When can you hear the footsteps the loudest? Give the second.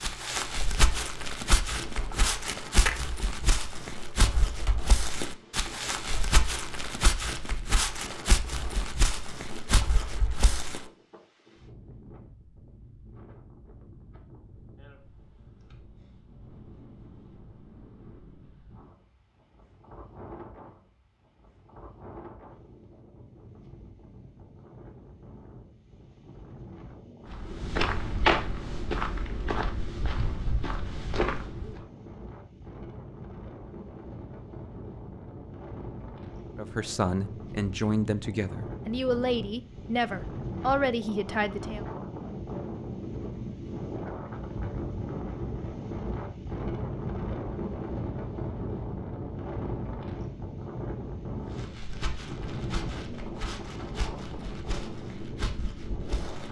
28 s.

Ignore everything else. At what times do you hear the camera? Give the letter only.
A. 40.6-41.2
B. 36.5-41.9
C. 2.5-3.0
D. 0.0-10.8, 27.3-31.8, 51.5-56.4
C.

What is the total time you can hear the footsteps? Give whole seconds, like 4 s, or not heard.
20 s.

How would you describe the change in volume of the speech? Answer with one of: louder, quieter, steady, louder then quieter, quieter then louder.
steady.